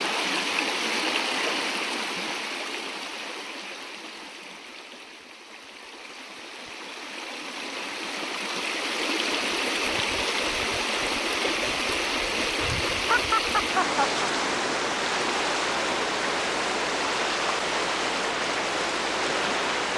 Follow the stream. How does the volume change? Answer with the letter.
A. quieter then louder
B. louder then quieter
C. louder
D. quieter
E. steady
A.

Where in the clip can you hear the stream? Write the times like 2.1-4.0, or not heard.
0.0-19.9.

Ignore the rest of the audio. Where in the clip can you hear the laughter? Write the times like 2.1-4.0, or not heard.
13.0-14.2.